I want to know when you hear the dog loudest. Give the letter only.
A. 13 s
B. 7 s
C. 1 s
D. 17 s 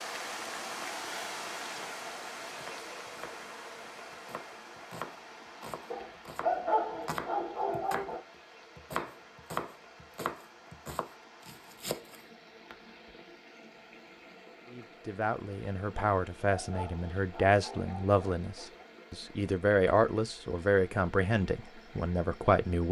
B.